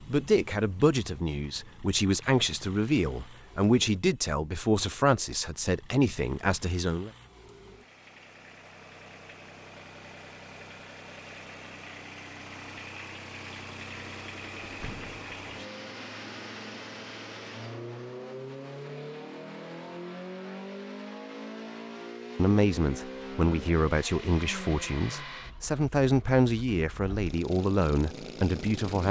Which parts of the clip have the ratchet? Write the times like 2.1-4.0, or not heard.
not heard.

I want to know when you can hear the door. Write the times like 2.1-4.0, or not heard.
14.6-15.2.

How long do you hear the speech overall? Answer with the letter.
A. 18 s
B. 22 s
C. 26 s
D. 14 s
D.